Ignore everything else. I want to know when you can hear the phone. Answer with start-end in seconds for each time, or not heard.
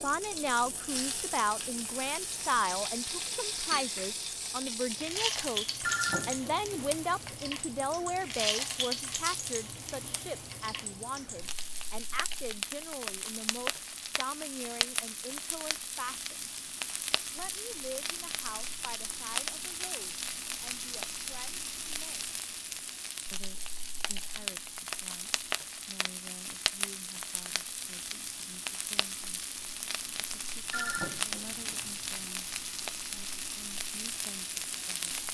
5.8-7.3, 30.7-32.2.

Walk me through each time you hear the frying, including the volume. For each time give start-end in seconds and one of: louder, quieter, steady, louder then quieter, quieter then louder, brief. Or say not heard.
0.0-35.3 steady.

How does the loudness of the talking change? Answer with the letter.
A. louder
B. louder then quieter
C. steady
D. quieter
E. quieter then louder
D.